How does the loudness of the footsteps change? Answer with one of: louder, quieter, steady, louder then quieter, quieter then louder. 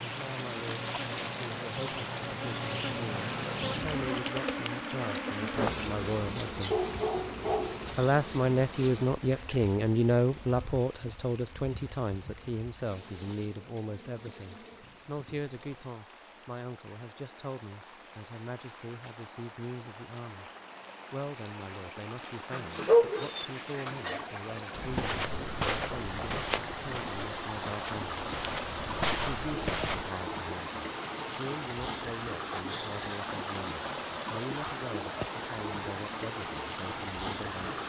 quieter then louder.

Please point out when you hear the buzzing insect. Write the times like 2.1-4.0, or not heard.
0.0-15.9.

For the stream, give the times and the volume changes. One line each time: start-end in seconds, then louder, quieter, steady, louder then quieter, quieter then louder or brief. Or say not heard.
0.0-37.8 quieter then louder.